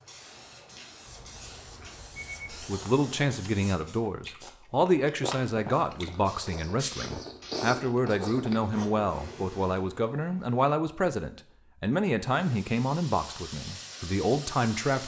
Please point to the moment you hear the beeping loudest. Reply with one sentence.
The loudest moment of the beeping is at 2 seconds.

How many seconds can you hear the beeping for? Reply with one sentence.
The beeping can be heard for 2 seconds in total.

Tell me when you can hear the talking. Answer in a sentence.
The talking can be heard from 2.5 to 15.0 s.